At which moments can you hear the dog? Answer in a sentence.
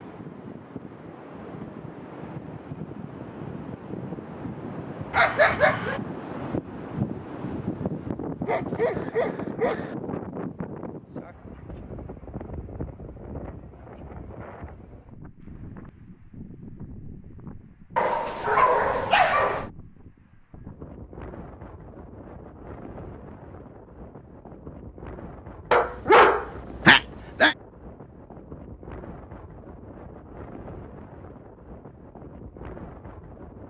The dog can be heard from 5.1 to 6.0 s, from 8.4 to 9.9 s, from 17.9 to 19.7 s and from 25.7 to 27.6 s.